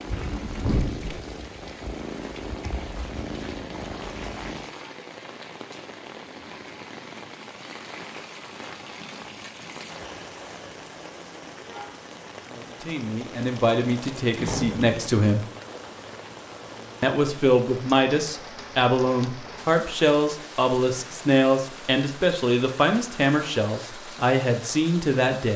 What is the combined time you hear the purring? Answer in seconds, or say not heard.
5 s.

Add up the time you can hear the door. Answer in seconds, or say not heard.
2 s.